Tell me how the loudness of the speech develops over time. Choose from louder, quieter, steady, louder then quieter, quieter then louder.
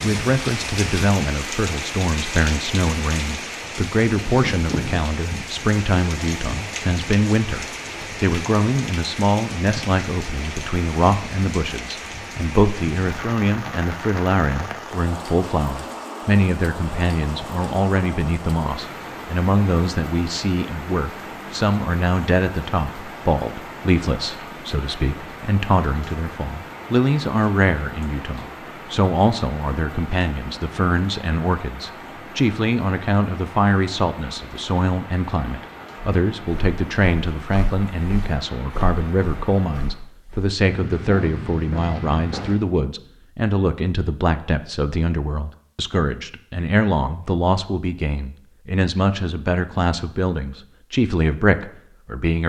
steady.